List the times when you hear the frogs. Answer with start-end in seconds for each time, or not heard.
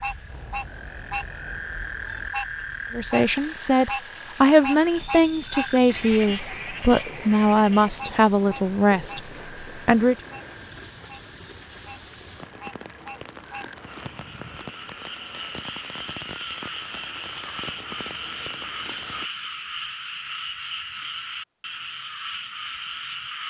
0.0-23.4.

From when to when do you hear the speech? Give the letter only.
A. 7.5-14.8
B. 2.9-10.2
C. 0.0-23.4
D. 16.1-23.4
B.